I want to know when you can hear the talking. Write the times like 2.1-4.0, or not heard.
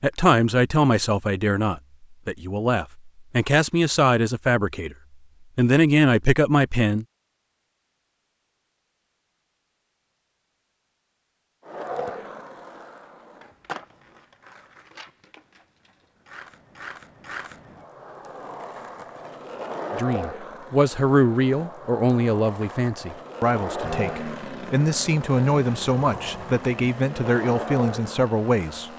0.0-5.0, 5.5-7.0, 19.9-28.9.